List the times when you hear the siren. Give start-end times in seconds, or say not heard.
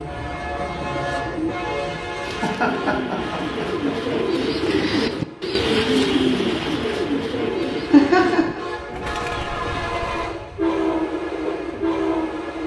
not heard.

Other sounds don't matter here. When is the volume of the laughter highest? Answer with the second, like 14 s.
8 s.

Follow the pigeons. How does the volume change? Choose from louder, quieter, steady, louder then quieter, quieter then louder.
louder then quieter.